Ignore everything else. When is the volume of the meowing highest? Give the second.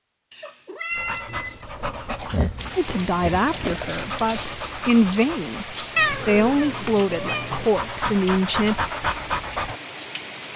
6 s.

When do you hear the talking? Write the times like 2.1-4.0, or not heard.
2.8-8.8.